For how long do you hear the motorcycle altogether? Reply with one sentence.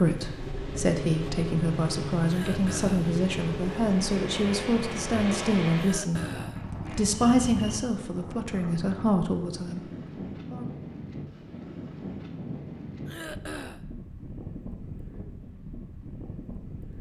The motorcycle can be heard for 8 seconds in total.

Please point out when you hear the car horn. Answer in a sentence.
You can't hear the car horn here.